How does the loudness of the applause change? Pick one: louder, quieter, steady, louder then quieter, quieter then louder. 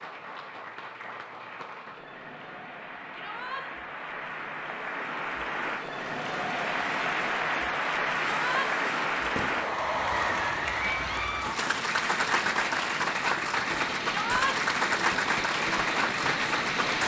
louder.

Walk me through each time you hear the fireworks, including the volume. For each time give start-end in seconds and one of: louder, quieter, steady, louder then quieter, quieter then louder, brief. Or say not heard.
8.2-17.0 louder.